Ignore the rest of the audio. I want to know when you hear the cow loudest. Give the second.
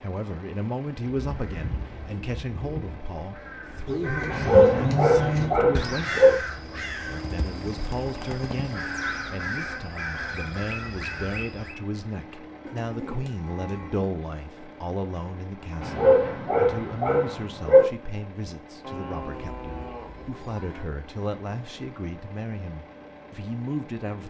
5 s.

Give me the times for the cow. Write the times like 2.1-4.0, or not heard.
3.9-5.5, 12.7-14.1, 18.8-20.9.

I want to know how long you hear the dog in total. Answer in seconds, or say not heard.
4 s.